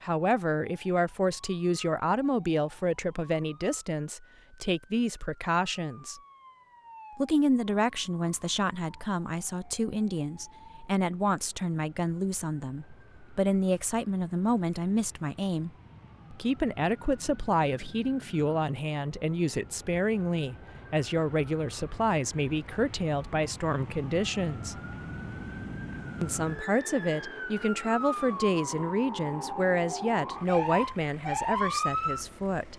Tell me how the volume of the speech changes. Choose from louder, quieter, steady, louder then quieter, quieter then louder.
steady.